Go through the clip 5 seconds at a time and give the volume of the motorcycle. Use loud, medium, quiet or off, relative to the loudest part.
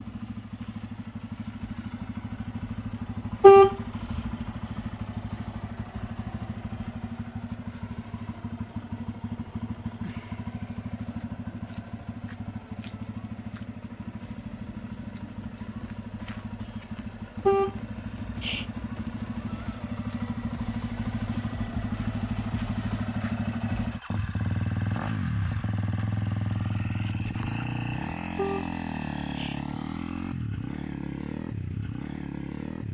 medium, medium, medium, medium, loud, loud, loud.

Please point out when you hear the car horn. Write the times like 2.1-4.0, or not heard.
3.4-4.3, 17.4-18.6, 28.4-29.6.